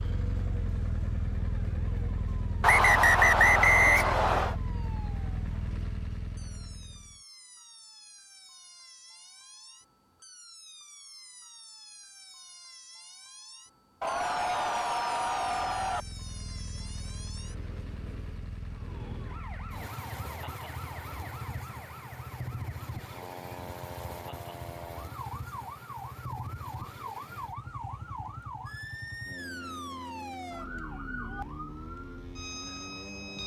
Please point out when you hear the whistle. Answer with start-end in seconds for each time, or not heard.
2.6-4.5.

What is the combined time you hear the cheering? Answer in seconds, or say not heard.
2 s.